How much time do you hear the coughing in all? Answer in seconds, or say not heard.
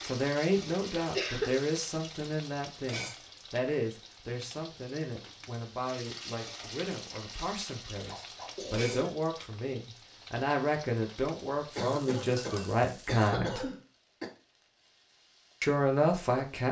4 s.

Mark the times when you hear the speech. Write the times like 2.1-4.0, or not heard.
0.0-13.7, 15.6-16.6.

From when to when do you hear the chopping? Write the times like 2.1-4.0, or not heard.
not heard.